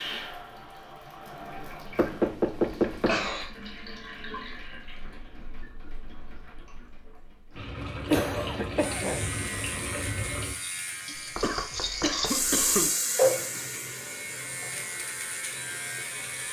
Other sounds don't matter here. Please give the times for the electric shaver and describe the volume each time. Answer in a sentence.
You can hear the electric shaver from 8.8 to 16.4 s, getting quieter then louder.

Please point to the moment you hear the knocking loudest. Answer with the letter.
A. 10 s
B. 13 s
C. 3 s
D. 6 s
C.